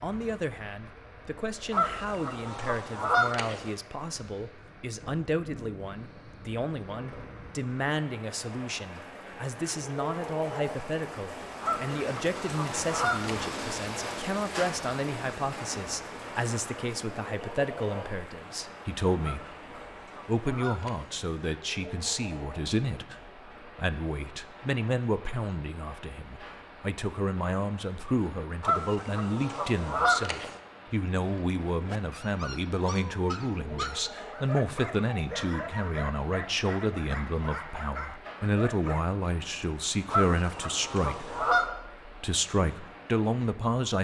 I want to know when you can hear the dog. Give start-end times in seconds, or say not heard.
31.2-39.1.